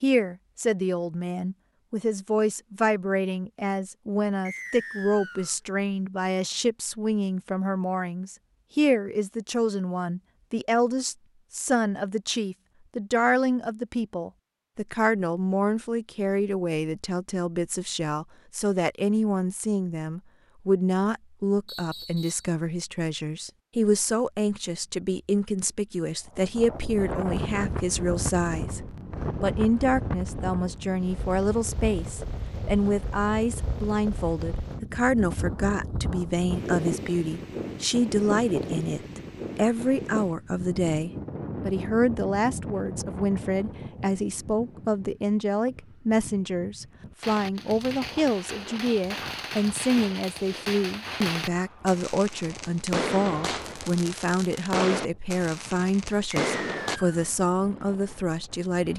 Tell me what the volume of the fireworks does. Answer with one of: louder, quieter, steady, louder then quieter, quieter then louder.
louder.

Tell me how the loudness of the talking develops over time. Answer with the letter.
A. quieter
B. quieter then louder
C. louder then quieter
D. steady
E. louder
D.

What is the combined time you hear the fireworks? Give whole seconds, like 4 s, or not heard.
10 s.